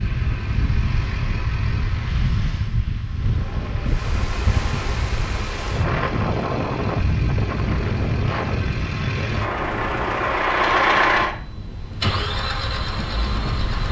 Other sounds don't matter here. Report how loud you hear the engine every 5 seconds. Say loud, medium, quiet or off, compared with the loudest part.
quiet, medium, loud.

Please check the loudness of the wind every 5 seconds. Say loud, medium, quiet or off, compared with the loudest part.
loud, loud, medium.